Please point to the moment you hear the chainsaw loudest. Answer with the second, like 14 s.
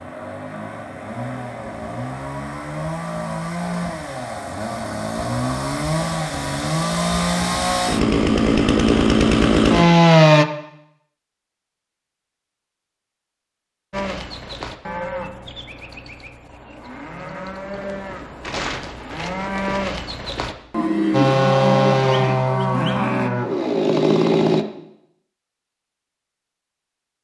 10 s.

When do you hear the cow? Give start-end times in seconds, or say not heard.
13.9-23.3.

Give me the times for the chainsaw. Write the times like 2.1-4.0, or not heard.
0.0-10.4, 21.1-24.6.